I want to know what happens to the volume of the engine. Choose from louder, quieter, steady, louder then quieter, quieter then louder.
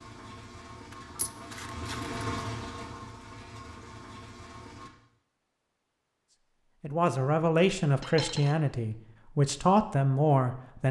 louder then quieter.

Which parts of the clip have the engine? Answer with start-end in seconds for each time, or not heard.
0.0-4.9.